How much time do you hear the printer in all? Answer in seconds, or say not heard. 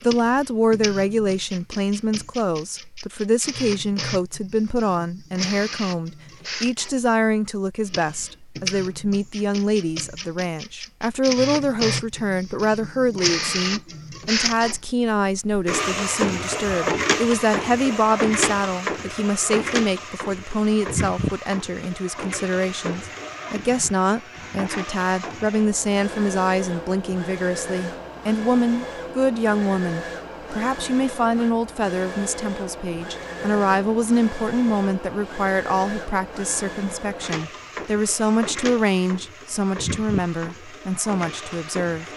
42 s.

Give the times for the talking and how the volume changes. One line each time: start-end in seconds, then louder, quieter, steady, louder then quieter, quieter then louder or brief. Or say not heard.
0.0-42.0 steady.